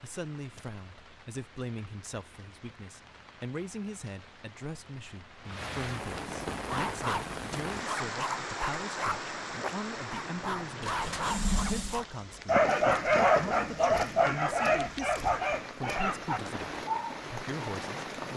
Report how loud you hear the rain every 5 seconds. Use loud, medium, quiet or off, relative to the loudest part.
quiet, loud, medium, loud.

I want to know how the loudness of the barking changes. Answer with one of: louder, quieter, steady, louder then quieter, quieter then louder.
louder then quieter.